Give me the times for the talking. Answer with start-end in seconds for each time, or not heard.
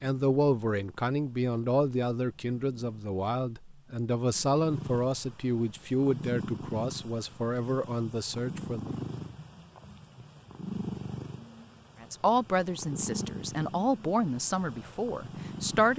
0.0-8.9, 12.0-15.9.